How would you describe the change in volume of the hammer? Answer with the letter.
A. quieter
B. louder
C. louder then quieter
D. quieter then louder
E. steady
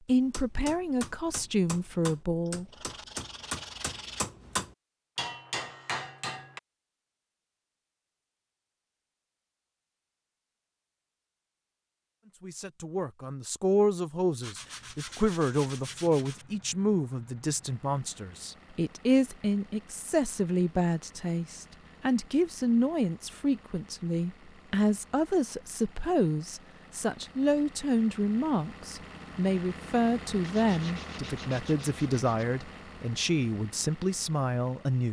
B.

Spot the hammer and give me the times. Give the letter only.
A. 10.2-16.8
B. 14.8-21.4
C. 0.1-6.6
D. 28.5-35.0
C.